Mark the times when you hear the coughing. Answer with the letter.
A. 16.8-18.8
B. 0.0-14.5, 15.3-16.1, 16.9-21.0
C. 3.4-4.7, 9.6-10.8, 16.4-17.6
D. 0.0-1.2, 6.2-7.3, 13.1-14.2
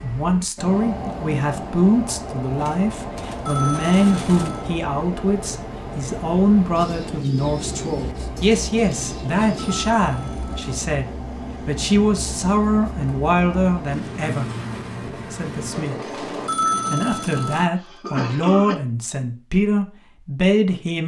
A.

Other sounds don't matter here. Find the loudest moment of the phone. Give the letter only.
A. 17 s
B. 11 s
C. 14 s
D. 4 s
A.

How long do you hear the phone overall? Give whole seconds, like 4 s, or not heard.
4 s.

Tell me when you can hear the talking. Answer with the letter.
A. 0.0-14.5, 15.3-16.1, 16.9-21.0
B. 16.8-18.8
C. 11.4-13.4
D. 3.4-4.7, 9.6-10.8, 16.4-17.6
A.